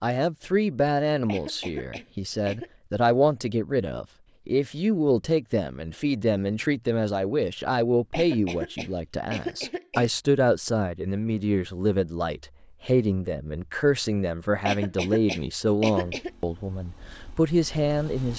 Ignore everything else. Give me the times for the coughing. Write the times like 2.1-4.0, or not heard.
1.2-2.7, 8.1-10.1, 14.7-16.3.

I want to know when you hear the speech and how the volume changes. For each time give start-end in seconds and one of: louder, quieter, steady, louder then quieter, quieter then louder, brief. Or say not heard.
0.0-18.3 steady.